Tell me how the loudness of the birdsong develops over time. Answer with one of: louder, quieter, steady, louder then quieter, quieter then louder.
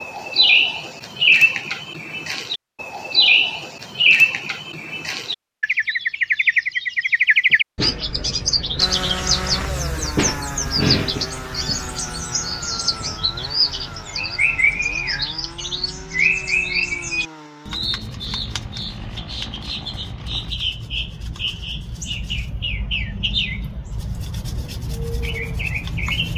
quieter.